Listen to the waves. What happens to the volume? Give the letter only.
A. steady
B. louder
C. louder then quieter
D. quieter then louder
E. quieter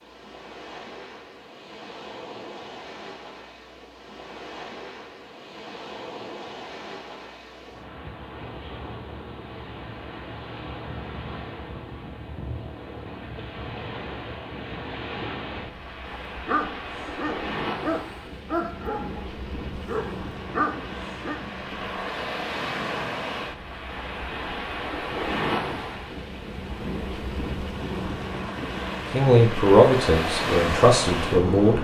B.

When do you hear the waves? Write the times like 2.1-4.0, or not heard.
0.0-31.8.